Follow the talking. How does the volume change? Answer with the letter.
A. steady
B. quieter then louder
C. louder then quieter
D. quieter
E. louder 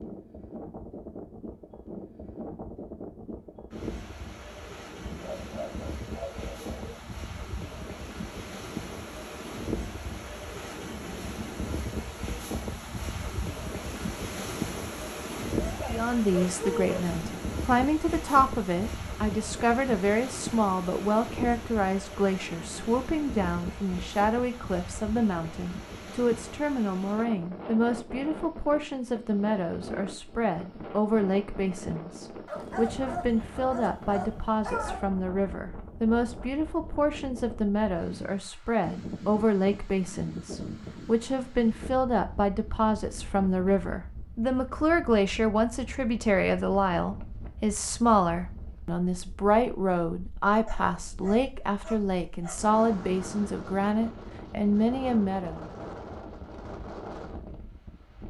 A.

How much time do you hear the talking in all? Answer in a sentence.
The talking can be heard for 40 seconds in total.